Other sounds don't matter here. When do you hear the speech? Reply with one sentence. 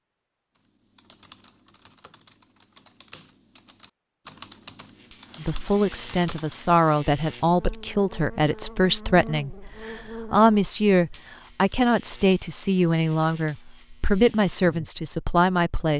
The speech can be heard from 5.4 to 15.9 s.